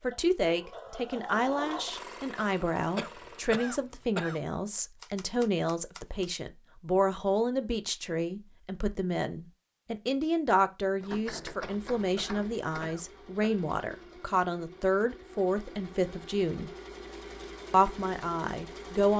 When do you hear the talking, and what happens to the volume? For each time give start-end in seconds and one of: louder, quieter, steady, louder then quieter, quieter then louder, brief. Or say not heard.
0.0-16.7 steady
17.7-19.1 brief.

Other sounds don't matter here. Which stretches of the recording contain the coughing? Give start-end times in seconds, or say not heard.
2.4-4.8, 11.0-13.7.